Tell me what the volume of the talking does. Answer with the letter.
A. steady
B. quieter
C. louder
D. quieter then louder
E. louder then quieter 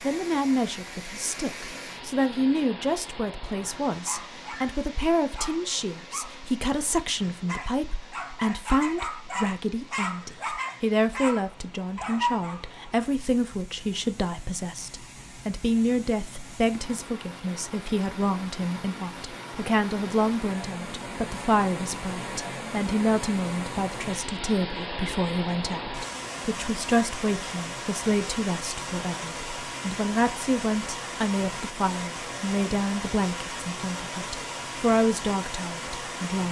A.